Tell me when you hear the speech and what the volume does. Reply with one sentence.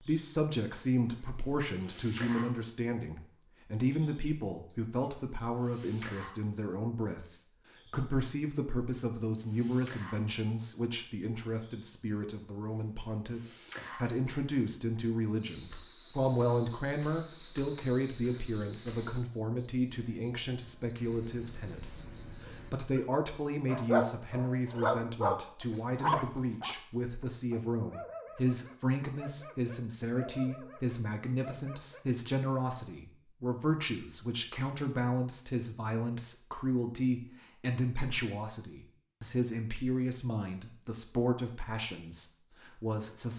You can hear the speech from 0.0 to 43.3 s, at a steady volume.